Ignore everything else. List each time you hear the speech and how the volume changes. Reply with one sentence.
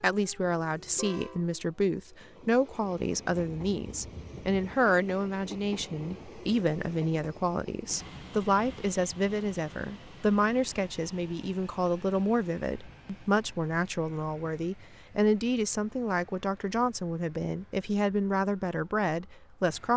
The speech can be heard from 0.0 to 19.9 s, at a steady volume.